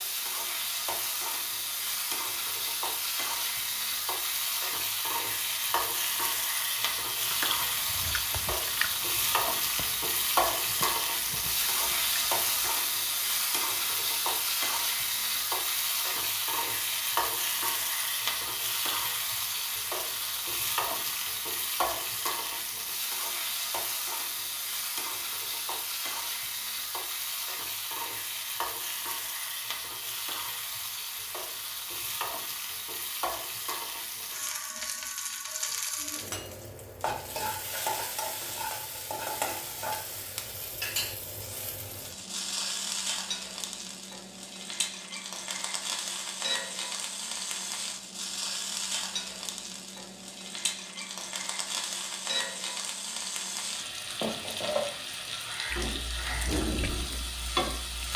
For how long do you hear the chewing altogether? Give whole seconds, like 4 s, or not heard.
8 s.